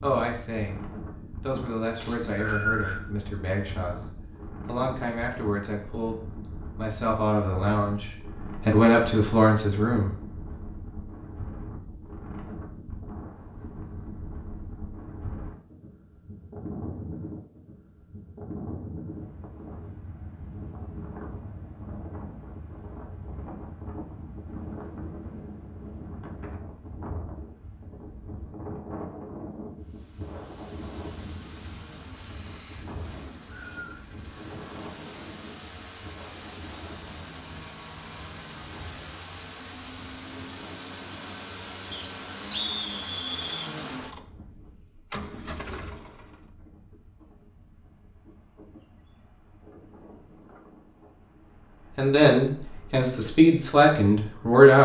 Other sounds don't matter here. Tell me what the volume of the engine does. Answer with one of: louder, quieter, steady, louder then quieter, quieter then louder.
louder.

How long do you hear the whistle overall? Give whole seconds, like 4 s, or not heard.
4 s.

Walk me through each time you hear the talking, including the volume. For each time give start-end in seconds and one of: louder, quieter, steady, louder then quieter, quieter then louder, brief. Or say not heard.
0.0-0.8 brief
1.4-10.1 louder
52.0-54.8 brief.